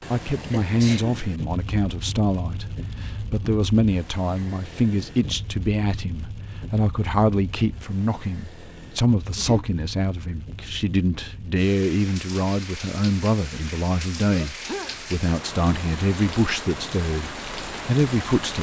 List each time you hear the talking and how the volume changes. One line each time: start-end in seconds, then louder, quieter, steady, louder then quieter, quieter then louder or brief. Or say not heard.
0.1-18.5 steady.